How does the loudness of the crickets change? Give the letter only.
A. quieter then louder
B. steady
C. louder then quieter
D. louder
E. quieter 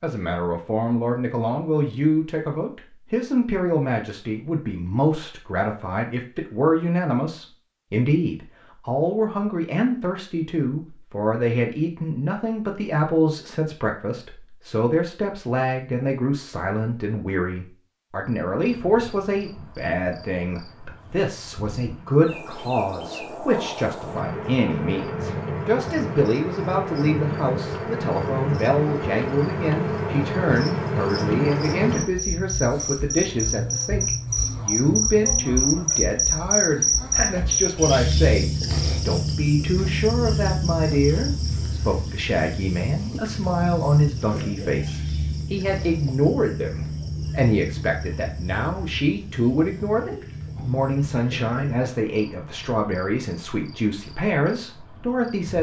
C.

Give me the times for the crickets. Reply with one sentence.
You can hear the crickets from 18.2 to 55.5 s.